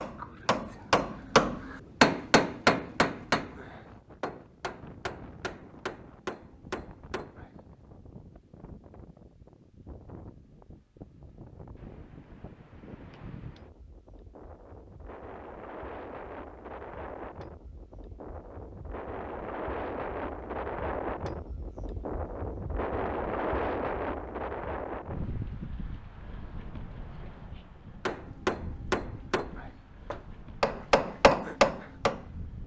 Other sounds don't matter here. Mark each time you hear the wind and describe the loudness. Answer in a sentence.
You can hear the wind from 0.0 to 32.6 s, getting louder then quieter.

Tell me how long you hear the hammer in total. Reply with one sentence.
You can hear the hammer for 12 seconds altogether.